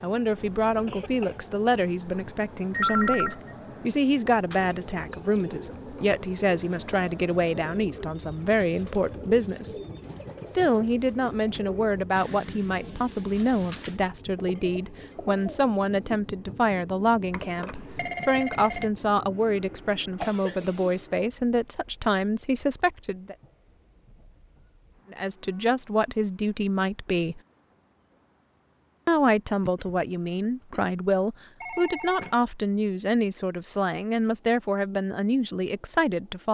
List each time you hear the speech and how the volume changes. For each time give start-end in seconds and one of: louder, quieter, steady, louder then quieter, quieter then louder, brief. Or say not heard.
0.0-9.8 steady
10.6-23.4 steady
25.1-27.4 brief
29.1-36.4 steady.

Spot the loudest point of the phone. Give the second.
3 s.